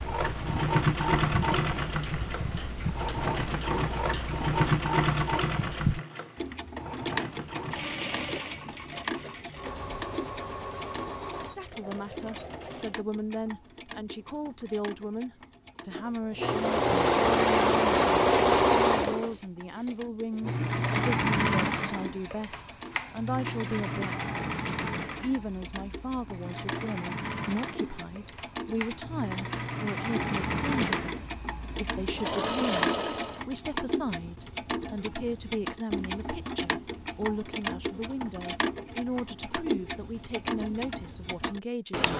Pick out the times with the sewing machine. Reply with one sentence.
You can hear the sewing machine from 0.0 to 13.0 s and from 15.9 to 33.5 s.